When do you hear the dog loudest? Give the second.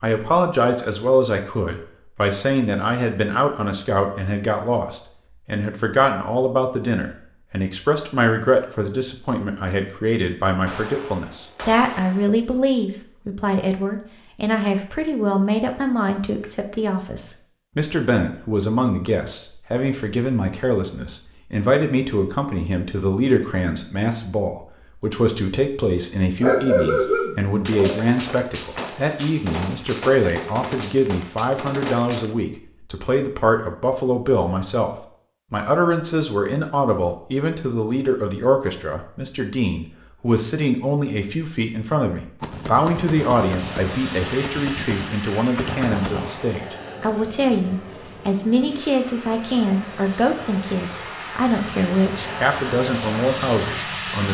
27 s.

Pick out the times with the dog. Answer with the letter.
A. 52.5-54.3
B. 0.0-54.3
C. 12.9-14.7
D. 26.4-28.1
D.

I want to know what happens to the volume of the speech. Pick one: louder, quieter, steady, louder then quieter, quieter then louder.
steady.